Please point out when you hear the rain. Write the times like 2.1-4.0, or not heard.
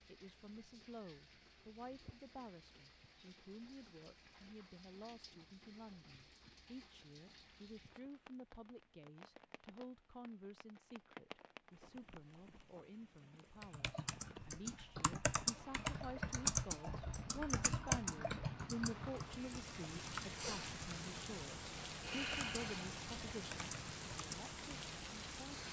0.0-25.6.